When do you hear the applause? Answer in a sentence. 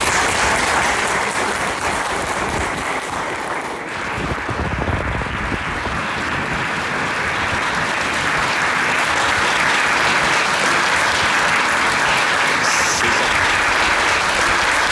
You can hear the applause from 0.0 to 14.8 s.